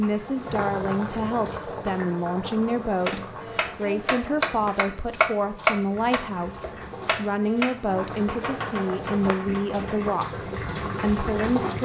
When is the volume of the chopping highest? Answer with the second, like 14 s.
6 s.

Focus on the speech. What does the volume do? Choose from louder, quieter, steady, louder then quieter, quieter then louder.
steady.